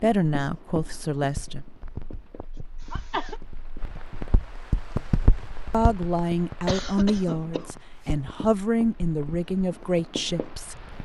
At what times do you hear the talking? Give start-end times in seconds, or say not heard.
0.0-1.6, 5.7-10.8.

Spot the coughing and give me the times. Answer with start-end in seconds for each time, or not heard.
2.4-3.4, 6.7-8.1.